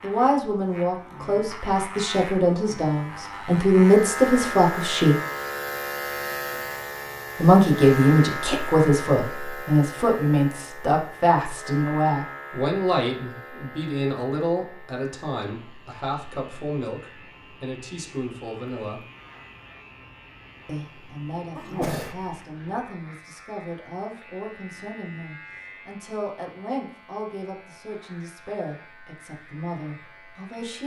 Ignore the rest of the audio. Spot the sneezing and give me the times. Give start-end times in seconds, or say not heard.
21.6-22.4.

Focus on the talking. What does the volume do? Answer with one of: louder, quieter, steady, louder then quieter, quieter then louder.
quieter.